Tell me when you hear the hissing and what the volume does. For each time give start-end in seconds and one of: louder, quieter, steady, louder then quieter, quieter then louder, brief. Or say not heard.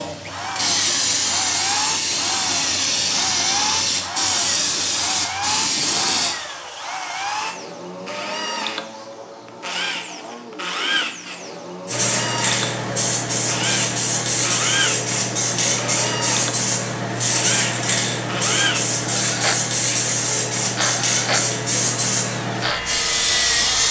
0.0-6.3 steady
11.8-23.8 steady.